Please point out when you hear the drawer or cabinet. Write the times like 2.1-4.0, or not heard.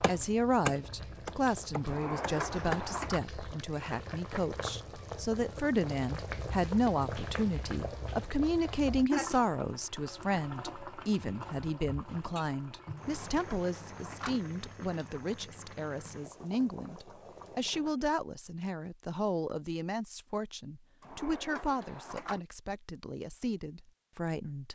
1.9-3.2, 12.9-14.4, 21.0-22.4.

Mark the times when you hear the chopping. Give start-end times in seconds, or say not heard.
0.0-2.8.